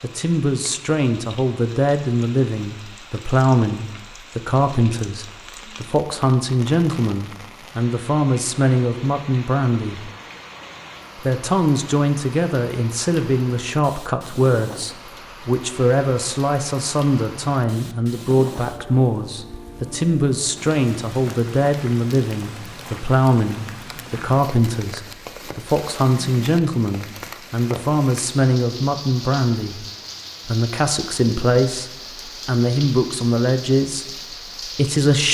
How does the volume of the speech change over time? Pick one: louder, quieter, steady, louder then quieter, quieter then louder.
steady.